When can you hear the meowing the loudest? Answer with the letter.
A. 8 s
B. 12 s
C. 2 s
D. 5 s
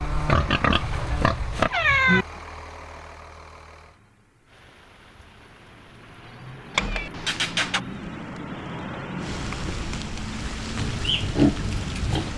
C.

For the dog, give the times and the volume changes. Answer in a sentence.
You can't hear the dog here.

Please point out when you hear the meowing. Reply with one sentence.
The meowing can be heard from 0.8 to 2.2 s and from 6.8 to 7.8 s.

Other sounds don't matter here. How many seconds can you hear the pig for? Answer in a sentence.
The pig can be heard for 3 seconds in total.